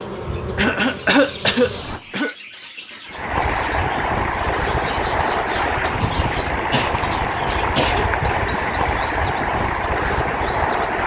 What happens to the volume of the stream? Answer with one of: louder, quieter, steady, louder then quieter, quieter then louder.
steady.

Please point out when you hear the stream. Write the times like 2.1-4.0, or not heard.
3.1-11.0.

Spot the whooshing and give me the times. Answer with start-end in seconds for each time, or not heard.
1.7-2.2.